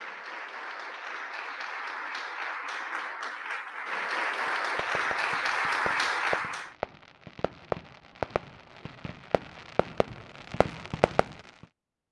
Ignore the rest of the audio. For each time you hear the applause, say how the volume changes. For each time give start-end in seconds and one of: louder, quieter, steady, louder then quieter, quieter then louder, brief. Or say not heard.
0.0-6.8 louder.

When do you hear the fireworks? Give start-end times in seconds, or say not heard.
4.5-11.3.